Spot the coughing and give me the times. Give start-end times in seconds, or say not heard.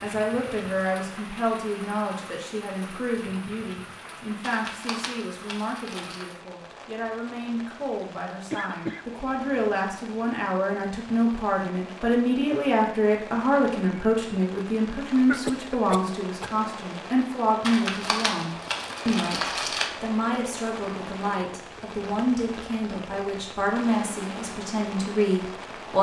8.5-9.1, 15.2-16.5.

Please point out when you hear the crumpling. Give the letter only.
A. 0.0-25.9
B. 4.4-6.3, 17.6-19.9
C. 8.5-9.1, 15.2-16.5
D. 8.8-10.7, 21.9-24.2
B.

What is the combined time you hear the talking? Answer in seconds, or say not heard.
26 s.